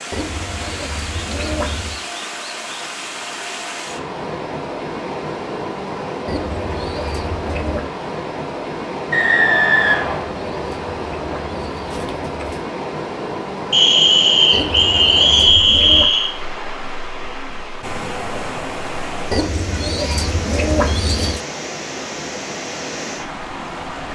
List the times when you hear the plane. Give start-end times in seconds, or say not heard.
not heard.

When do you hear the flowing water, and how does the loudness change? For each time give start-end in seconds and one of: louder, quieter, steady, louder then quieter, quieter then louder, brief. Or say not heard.
0.0-24.0 steady.